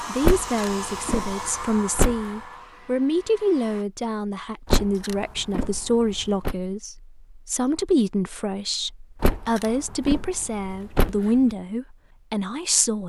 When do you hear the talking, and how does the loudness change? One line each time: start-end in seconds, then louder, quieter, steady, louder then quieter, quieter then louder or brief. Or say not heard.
0.1-13.0 steady.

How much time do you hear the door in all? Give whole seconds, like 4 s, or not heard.
6 s.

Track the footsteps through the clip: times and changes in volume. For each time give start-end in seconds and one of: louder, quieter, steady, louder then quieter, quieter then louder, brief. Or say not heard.
not heard.